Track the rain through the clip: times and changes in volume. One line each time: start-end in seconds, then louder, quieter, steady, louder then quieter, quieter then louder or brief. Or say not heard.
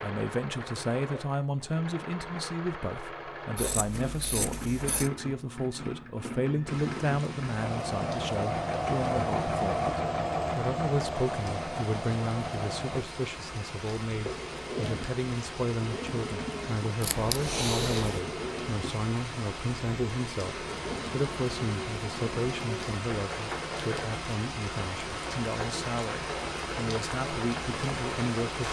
6.7-28.6 louder.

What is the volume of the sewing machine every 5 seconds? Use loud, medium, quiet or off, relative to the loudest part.
medium, loud, loud, medium, medium, medium.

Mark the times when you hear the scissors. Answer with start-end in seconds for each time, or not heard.
3.5-5.1, 17.0-18.2.